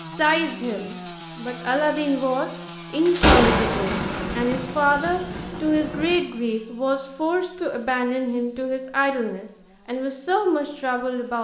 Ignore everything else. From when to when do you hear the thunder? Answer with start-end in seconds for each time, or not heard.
3.0-6.2.